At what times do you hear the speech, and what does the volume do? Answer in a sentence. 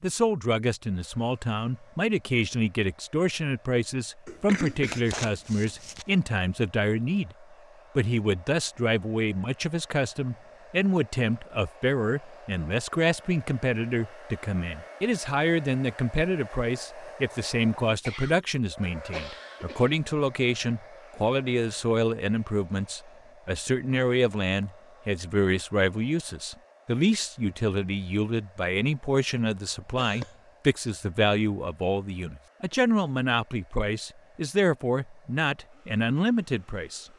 You can hear the speech from 0.0 to 37.0 s, at a steady volume.